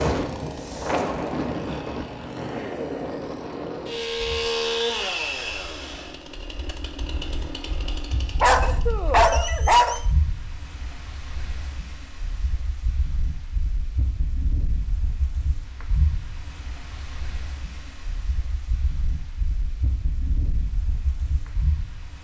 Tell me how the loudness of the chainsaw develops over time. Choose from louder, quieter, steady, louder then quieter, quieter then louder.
louder then quieter.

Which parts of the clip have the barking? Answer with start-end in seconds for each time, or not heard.
8.4-10.0.